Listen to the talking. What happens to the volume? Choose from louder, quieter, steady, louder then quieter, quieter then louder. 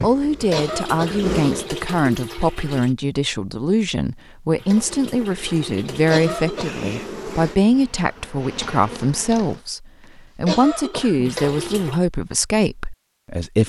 steady.